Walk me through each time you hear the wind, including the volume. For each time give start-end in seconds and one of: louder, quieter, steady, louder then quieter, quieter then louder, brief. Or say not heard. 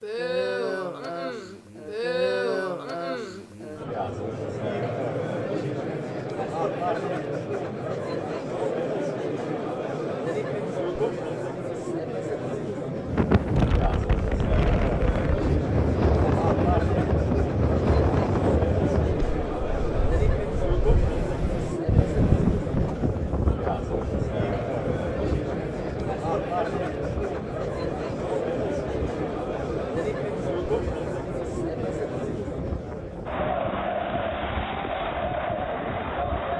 13.1-36.5 quieter.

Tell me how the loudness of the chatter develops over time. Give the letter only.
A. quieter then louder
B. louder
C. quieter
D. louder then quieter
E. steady
E.